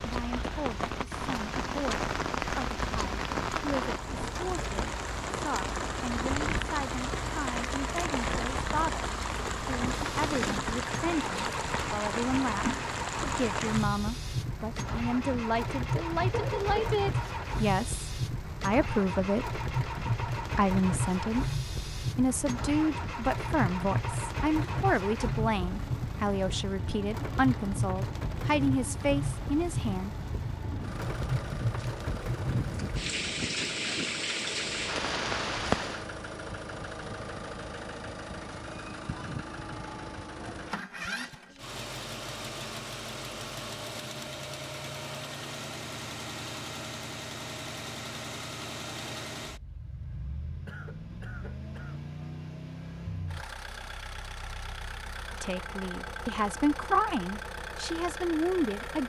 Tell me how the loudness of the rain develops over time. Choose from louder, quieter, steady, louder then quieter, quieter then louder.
steady.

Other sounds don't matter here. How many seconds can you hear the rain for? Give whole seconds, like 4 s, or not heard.
36 s.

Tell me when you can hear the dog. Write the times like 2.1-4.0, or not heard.
not heard.